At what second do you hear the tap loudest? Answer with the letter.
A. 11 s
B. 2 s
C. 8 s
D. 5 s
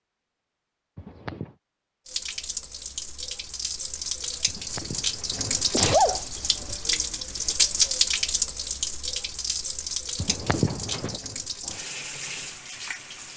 C.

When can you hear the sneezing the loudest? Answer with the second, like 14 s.
6 s.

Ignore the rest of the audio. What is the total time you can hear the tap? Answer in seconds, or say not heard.
11 s.